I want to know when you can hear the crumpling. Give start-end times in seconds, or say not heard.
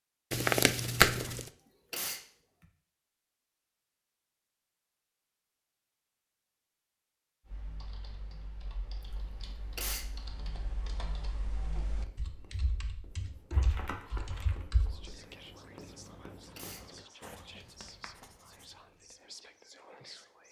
0.3-1.4, 13.5-14.7.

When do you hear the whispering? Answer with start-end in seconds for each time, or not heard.
14.1-20.4.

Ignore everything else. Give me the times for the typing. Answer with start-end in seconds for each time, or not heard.
7.5-15.1.